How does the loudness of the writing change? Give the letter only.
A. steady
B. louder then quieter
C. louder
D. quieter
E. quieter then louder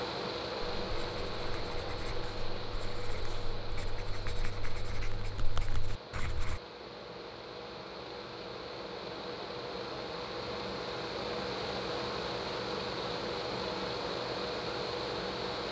C.